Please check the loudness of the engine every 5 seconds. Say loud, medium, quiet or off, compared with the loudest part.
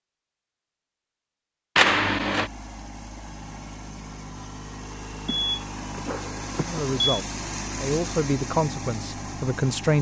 medium, loud.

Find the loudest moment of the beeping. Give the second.
2 s.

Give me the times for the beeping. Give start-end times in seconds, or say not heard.
1.8-2.5, 5.2-7.0.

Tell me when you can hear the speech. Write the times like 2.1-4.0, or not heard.
6.7-9.9.